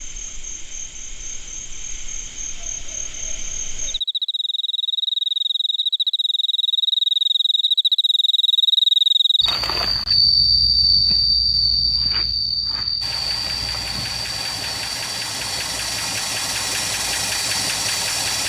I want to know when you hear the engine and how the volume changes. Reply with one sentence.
The engine can be heard from 13.0 to 18.4 s, getting louder.